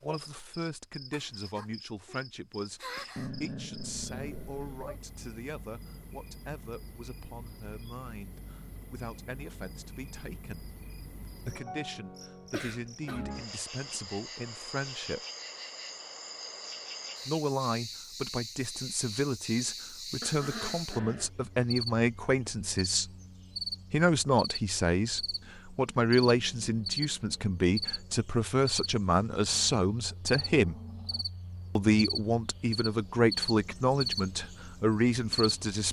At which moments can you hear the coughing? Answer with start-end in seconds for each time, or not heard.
12.5-13.3.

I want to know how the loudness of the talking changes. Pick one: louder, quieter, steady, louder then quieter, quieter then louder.
louder.